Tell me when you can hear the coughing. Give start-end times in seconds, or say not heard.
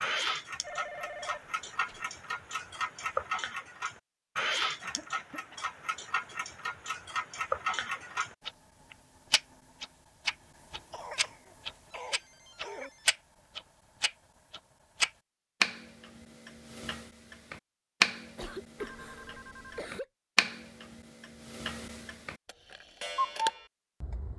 4.8-5.6, 10.9-12.9, 18.4-20.1.